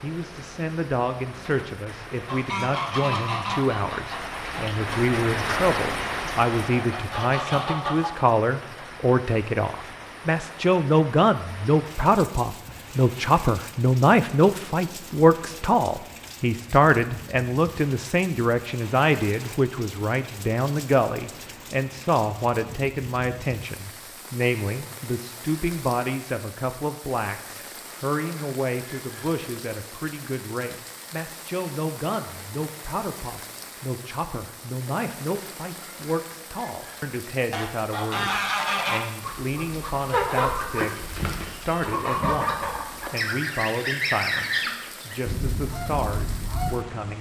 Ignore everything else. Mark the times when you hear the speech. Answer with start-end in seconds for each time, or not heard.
0.0-47.1.